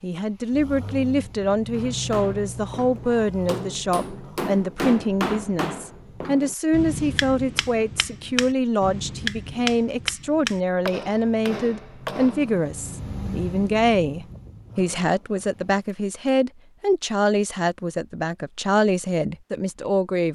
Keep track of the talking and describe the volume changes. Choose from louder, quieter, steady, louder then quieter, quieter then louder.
steady.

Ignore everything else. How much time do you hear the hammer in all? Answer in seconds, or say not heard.
11 s.